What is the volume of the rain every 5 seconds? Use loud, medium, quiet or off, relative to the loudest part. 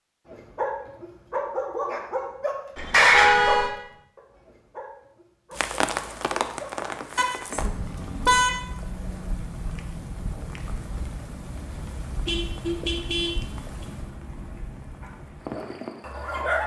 off, loud, medium, medium.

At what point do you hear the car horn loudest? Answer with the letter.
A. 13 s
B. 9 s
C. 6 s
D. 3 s
D.